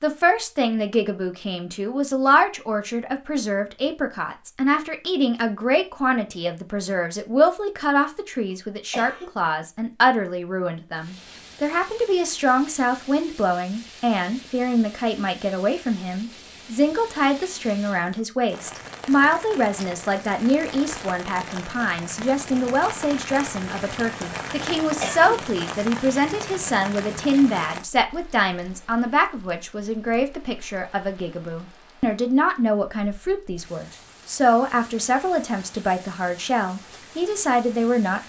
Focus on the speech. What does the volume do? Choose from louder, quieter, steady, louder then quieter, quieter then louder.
steady.